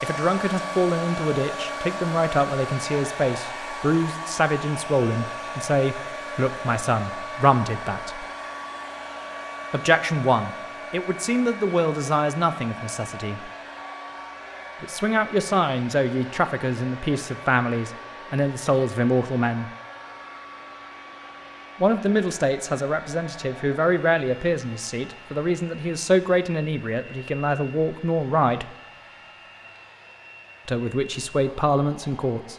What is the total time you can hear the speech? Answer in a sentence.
You can hear the speech for 26 seconds altogether.